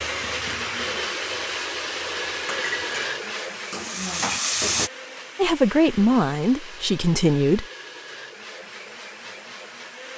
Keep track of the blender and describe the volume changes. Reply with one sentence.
The volume of the blender goes down.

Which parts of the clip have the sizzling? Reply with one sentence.
The sizzling can be heard from 0.0 to 4.9 s.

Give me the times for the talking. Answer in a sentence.
The talking can be heard from 5.3 to 7.7 s.